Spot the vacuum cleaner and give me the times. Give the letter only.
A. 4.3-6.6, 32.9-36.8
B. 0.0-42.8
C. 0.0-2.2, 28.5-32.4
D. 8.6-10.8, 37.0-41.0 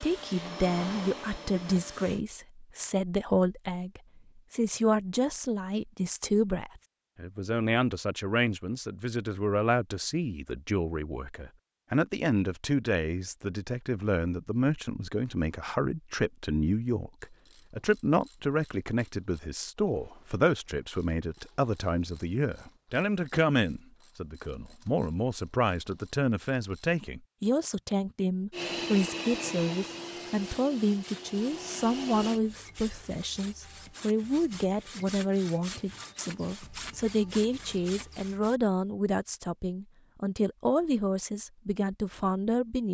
C.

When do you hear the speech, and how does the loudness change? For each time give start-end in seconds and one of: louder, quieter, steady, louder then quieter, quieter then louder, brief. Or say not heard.
0.0-42.8 steady.